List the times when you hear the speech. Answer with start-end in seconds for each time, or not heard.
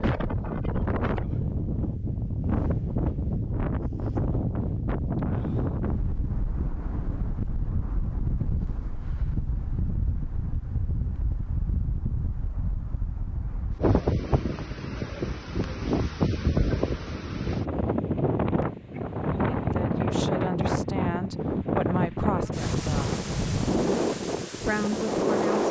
19.5-23.1, 24.6-25.6.